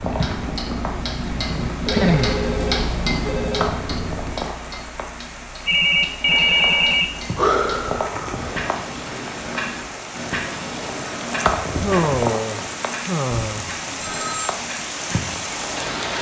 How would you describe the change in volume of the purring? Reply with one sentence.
The volume of the purring stays about the same.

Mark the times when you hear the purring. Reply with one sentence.
You can hear the purring from 0.0 to 4.5 s.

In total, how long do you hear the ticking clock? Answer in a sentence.
The ticking clock can be heard for 16 seconds in total.